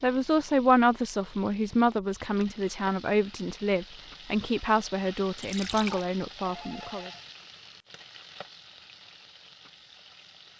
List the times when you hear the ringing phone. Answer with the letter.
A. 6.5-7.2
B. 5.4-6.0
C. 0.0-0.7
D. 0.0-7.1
A.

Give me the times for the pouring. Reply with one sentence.
The pouring can be heard from 5.4 to 6.0 s.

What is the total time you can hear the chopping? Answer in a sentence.
You can't hear the chopping here.